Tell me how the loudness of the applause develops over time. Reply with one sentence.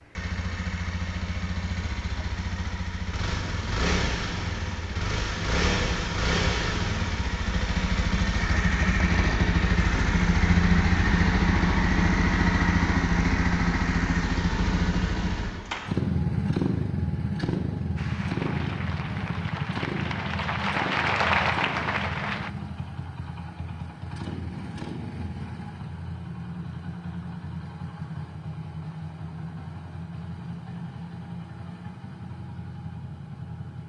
The loudness of the applause goes up.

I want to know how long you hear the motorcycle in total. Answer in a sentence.
You can hear the motorcycle for 34 seconds altogether.